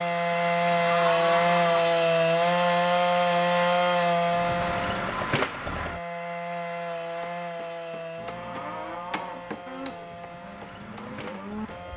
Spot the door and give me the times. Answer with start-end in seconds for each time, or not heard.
not heard.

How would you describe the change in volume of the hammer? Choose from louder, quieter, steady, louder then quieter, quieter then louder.
louder then quieter.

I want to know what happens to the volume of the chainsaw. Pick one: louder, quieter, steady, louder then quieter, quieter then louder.
quieter.